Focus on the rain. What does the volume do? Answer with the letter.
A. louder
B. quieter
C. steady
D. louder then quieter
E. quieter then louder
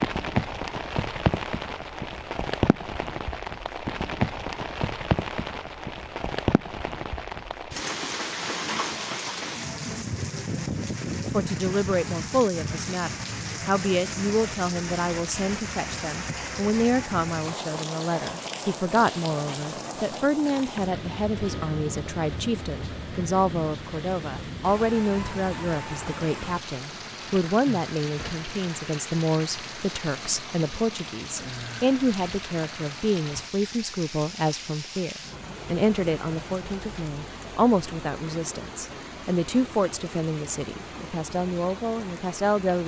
B.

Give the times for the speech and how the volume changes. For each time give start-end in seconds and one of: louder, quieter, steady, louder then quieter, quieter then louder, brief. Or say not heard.
11.3-42.8 steady.